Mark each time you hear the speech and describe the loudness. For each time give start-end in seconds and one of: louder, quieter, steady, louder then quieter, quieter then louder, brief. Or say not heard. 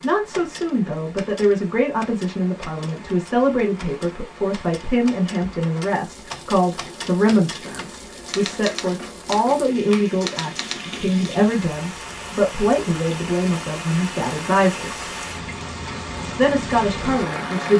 0.0-15.1 steady
16.4-17.7 brief.